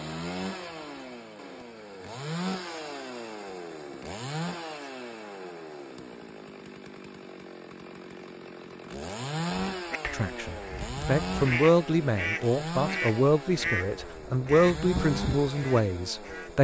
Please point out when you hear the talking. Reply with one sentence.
You can hear the talking from 10.1 to 16.5 s.